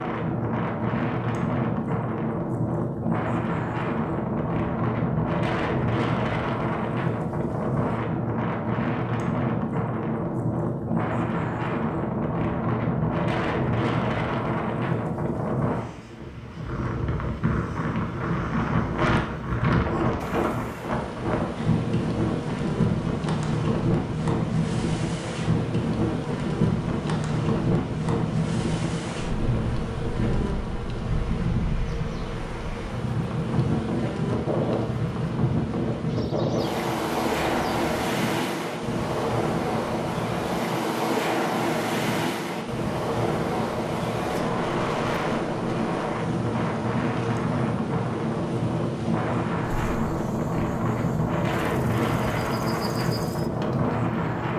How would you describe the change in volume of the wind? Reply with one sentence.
The loudness of the wind stays about the same.